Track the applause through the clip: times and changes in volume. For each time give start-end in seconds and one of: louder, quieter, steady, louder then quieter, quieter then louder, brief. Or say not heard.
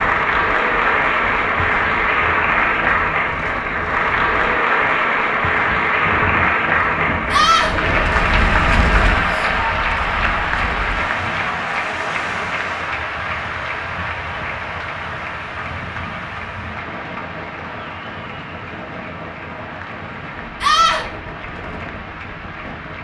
0.0-22.9 quieter.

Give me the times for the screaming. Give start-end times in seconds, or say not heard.
7.3-7.8, 20.6-21.1.